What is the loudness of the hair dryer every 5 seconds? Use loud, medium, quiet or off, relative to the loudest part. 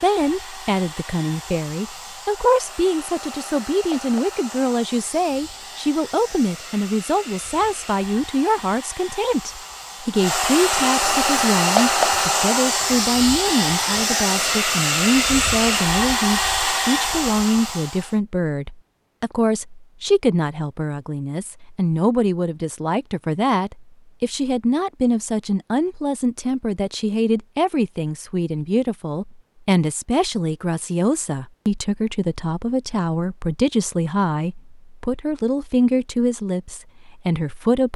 quiet, quiet, loud, loud, off, off, off, off.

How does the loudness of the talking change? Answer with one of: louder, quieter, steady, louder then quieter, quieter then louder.
steady.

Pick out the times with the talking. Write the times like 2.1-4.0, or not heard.
0.0-37.9.